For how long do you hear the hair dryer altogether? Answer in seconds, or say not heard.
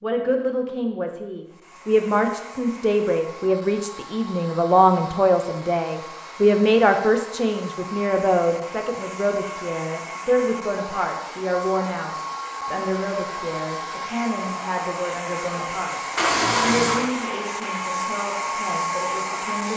18 s.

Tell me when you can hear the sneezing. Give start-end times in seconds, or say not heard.
not heard.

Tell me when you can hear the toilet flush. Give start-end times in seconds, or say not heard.
16.1-17.1.